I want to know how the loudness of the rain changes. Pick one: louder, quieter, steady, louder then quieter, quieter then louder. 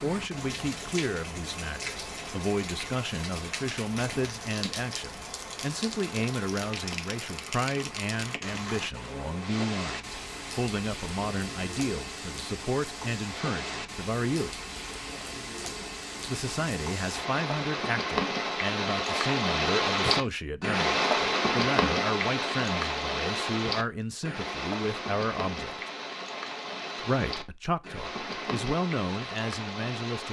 louder then quieter.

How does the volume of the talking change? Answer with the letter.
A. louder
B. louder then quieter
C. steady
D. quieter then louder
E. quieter
C.